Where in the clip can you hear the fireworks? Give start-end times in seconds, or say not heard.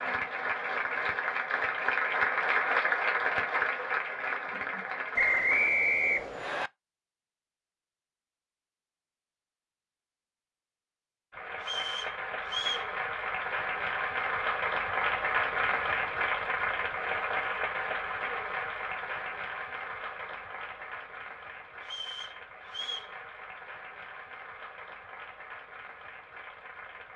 not heard.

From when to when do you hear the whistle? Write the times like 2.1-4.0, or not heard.
5.2-6.7, 11.6-12.9, 21.8-23.1.